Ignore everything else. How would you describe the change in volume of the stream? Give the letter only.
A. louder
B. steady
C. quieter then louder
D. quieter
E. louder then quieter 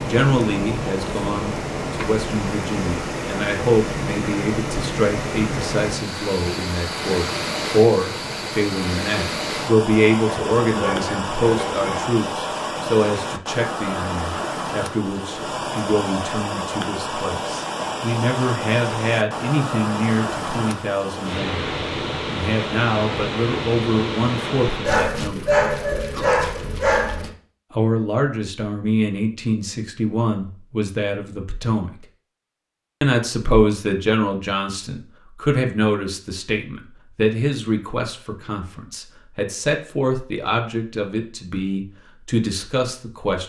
B.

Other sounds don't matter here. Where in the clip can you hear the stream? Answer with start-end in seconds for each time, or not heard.
0.0-25.1.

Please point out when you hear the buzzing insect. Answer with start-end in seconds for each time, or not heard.
not heard.